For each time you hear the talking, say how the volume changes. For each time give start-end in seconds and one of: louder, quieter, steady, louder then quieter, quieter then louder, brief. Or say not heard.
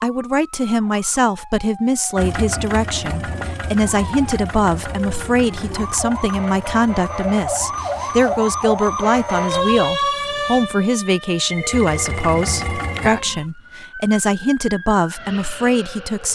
0.0-16.3 steady.